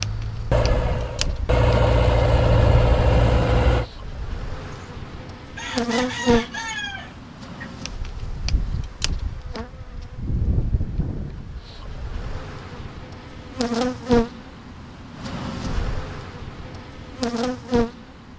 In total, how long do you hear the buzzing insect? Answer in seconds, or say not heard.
18 s.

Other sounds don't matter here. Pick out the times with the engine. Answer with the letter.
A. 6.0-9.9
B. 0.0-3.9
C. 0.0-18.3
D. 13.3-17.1
B.